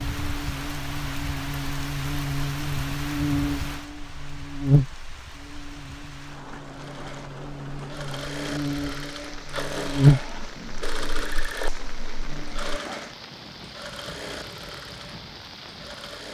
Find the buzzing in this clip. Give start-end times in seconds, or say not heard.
0.0-12.8.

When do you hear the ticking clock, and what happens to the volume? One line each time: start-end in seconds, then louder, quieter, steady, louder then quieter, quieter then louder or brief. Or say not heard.
not heard.